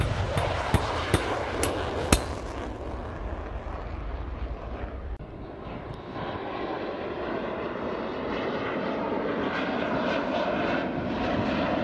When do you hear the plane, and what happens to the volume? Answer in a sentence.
The plane can be heard from 0.0 to 11.8 s, getting quieter then louder.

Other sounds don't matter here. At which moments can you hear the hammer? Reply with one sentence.
The hammer can be heard from 0.0 to 2.3 s.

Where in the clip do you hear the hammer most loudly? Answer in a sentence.
The loudest moment of the hammer is at 2 seconds.